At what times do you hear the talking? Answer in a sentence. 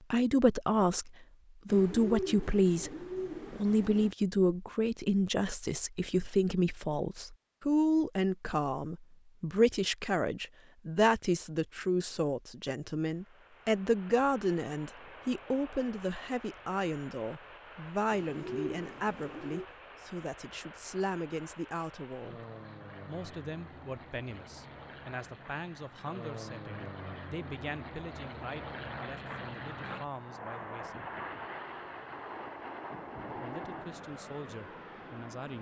The talking can be heard from 0.1 to 22.4 s, from 23.1 to 31.1 s and from 33.3 to 35.5 s.